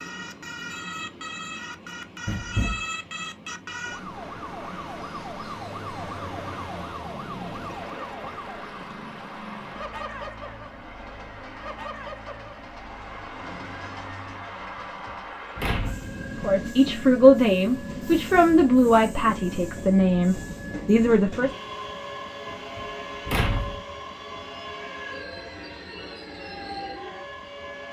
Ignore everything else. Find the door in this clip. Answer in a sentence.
You can hear the door from 2.2 to 2.9 s, from 15.1 to 16.1 s and from 22.8 to 23.8 s.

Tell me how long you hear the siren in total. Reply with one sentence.
You can hear the siren for 28 seconds altogether.